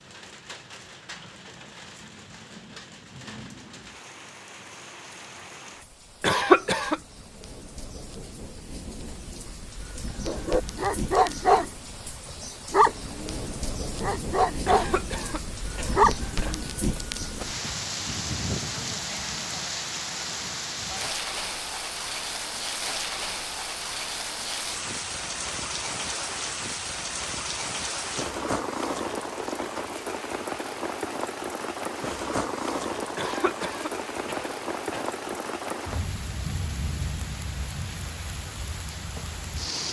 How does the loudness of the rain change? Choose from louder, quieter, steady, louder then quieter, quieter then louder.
louder.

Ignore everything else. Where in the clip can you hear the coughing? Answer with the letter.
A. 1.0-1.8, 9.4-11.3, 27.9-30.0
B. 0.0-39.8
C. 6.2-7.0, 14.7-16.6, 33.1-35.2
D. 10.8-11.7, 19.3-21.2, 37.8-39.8
C.